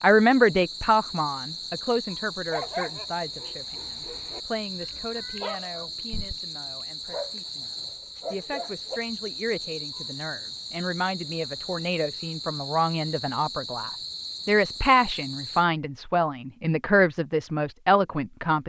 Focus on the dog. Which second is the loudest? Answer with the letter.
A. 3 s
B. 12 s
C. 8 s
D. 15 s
A.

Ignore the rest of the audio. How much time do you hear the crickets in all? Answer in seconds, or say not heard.
16 s.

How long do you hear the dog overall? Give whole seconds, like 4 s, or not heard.
6 s.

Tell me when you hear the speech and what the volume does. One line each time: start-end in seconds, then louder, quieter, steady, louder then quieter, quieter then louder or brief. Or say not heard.
0.0-18.6 quieter then louder.